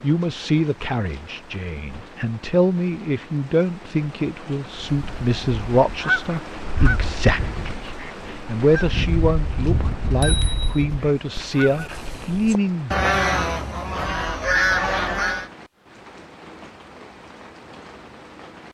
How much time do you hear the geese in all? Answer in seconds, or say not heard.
11 s.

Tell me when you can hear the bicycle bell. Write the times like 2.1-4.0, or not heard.
9.8-10.8.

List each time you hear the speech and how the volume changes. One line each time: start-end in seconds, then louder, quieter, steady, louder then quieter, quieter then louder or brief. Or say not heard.
0.0-13.1 steady.